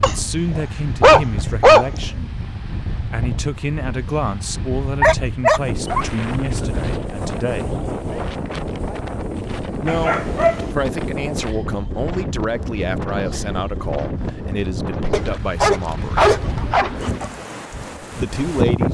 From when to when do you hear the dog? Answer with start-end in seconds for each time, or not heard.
0.0-1.9, 5.0-7.0, 9.8-10.7, 15.1-17.2.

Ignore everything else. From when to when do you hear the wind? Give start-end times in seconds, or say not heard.
0.0-18.8.